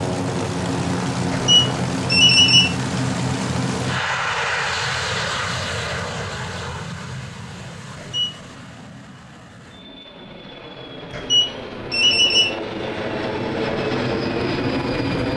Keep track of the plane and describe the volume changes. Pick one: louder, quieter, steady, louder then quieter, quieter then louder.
quieter then louder.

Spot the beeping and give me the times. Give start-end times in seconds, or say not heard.
1.3-2.8, 8.0-8.4, 11.1-12.6.